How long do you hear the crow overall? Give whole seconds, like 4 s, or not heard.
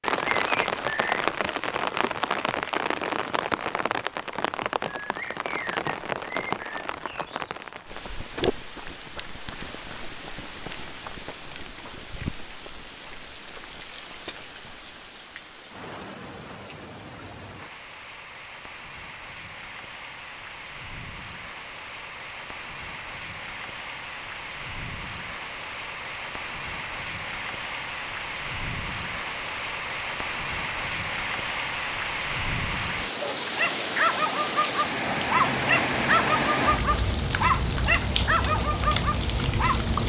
not heard.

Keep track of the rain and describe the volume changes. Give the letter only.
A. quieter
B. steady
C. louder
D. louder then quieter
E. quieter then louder
E.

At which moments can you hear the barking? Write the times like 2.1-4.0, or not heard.
33.2-39.8.